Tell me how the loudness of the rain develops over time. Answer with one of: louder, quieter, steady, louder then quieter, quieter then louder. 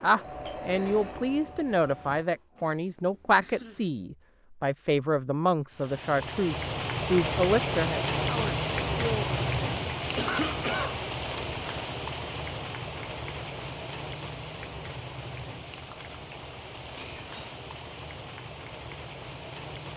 quieter.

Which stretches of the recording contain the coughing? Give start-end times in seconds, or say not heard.
2.5-3.9, 10.2-11.0, 16.9-17.6.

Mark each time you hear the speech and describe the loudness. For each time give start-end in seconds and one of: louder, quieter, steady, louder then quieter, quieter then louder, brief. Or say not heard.
0.0-9.3 steady.